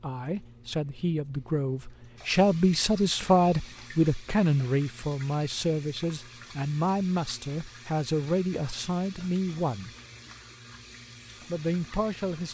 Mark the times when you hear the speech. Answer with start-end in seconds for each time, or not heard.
0.0-9.9, 11.4-12.5.